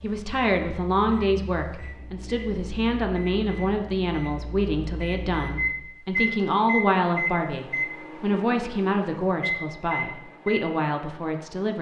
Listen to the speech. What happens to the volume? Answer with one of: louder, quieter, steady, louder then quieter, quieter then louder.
steady.